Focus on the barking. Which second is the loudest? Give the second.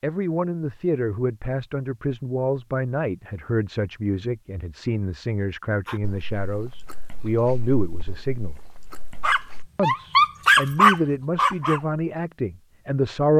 11 s.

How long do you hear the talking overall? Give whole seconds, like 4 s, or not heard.
12 s.